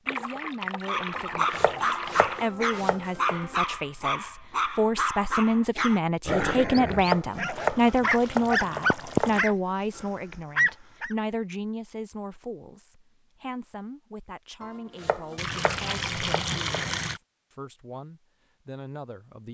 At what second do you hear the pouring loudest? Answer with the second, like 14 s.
9 s.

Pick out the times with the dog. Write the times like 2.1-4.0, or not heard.
0.8-11.2.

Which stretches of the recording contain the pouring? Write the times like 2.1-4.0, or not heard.
0.1-2.5, 6.7-9.4, 15.3-17.2.